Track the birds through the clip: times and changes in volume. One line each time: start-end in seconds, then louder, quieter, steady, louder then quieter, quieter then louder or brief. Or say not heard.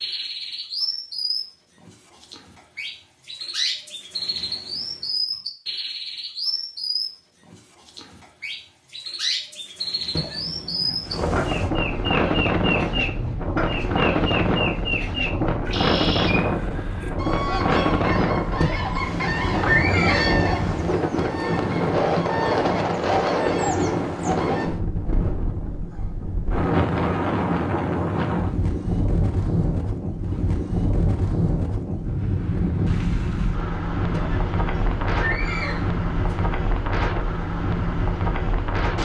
0.0-24.7 steady.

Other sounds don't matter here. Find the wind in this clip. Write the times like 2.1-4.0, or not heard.
11.0-39.0.